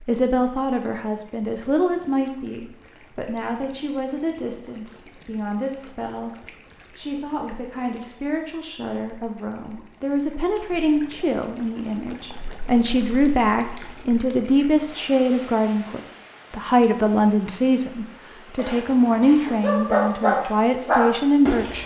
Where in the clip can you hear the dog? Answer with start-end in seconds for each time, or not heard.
18.6-21.8.